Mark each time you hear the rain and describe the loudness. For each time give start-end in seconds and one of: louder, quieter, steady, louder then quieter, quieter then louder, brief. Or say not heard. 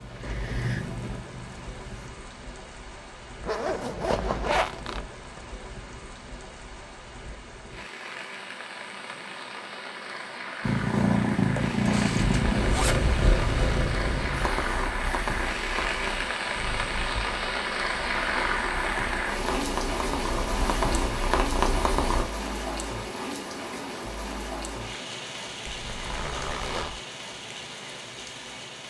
0.0-28.8 louder then quieter.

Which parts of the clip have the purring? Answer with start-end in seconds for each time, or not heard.
0.0-2.1, 10.6-22.2.